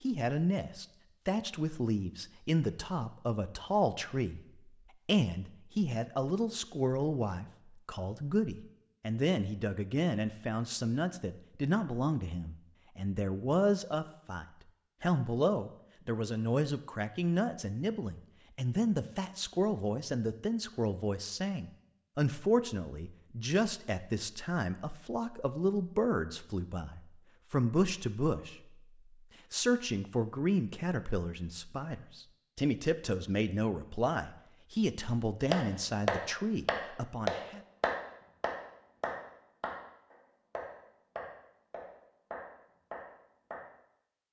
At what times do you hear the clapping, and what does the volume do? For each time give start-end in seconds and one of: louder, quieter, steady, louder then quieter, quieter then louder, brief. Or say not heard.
35.5-43.6 quieter.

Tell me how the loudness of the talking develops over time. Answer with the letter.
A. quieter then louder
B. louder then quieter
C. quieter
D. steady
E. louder
D.